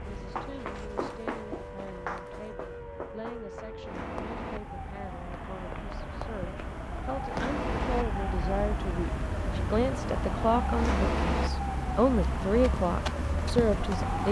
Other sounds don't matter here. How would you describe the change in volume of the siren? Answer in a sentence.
The loudness of the siren goes up.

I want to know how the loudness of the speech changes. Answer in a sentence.
The loudness of the speech goes up.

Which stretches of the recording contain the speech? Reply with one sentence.
You can hear the speech from 0.0 to 14.2 s.